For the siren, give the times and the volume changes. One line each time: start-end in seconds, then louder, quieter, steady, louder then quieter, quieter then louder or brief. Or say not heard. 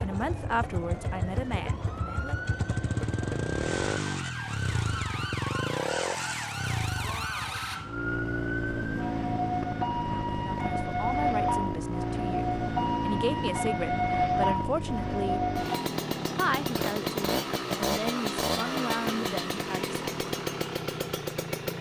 0.0-15.9 louder.